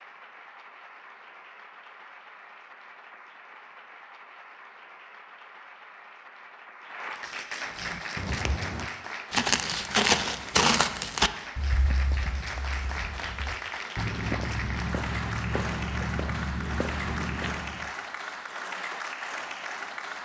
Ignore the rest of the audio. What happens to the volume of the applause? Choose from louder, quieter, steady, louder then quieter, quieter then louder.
louder.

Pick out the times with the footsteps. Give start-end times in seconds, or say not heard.
7.7-17.9.